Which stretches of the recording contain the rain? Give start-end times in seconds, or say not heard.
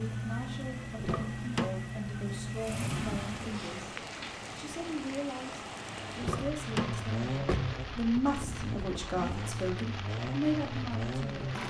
3.1-11.6.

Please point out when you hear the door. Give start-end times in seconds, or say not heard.
0.9-1.7, 6.2-7.8.